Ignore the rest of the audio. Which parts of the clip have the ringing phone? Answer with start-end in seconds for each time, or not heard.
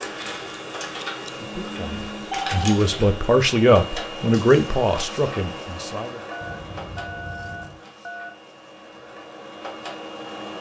1.4-2.8, 6.3-8.3.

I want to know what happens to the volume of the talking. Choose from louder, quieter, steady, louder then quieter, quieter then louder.
louder then quieter.